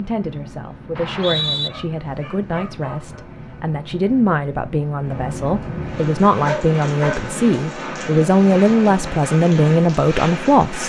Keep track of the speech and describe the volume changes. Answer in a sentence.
The loudness of the speech goes up.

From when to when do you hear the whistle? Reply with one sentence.
You can hear the whistle from 0.9 to 1.7 s.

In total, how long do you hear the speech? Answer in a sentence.
You can hear the speech for 11 seconds altogether.